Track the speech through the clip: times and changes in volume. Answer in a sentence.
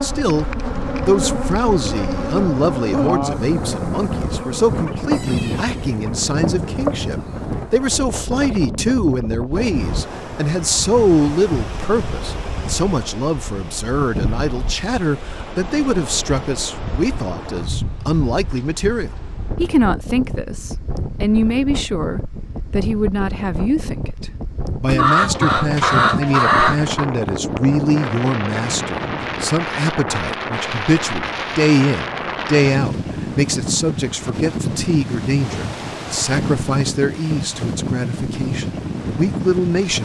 The speech can be heard from 0.0 to 40.0 s, at a steady volume.